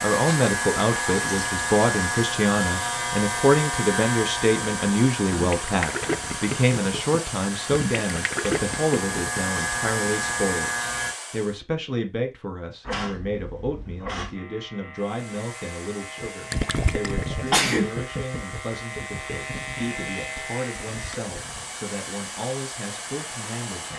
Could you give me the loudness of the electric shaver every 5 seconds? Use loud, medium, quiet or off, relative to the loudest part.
loud, medium, loud, medium, medium.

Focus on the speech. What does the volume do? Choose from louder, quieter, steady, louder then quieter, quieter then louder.
quieter.